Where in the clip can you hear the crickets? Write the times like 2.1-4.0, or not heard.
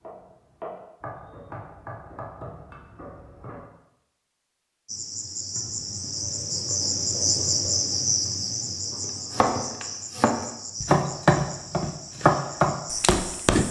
4.8-13.6.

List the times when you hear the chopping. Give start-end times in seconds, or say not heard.
0.0-3.6, 8.9-13.6.